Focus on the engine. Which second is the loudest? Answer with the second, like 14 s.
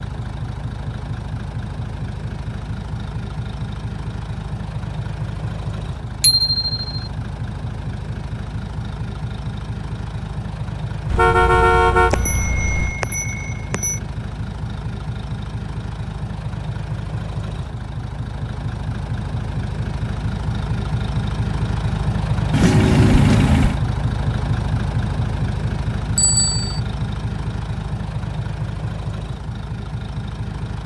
23 s.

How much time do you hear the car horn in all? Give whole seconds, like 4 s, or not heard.
3 s.